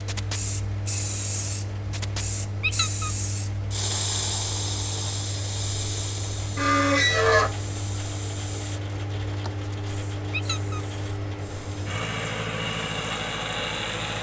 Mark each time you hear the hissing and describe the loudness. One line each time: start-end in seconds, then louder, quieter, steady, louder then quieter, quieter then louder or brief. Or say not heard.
0.0-14.1 quieter.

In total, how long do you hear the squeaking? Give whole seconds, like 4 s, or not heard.
2 s.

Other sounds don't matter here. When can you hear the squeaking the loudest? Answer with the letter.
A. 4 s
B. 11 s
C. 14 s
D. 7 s
D.